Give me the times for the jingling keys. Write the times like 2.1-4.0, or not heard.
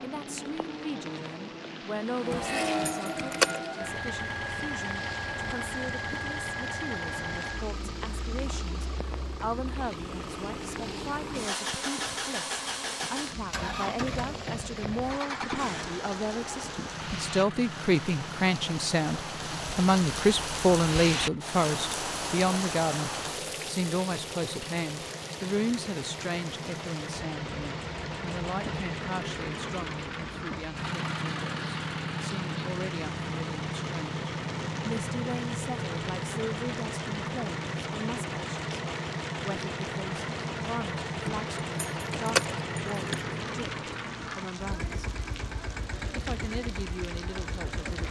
2.3-3.6, 41.2-43.2.